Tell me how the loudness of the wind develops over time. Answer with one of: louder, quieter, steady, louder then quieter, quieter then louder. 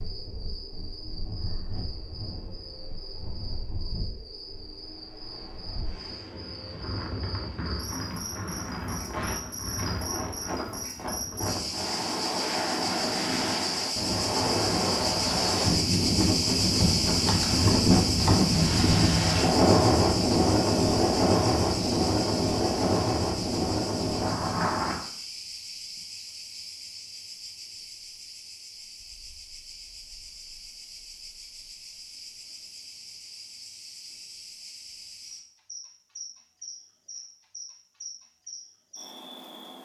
louder.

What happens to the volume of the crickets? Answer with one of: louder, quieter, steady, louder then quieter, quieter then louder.
louder then quieter.